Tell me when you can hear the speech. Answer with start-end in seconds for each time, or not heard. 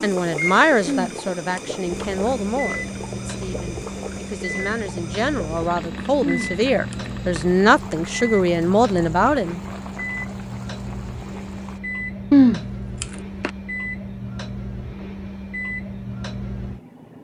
0.0-9.6.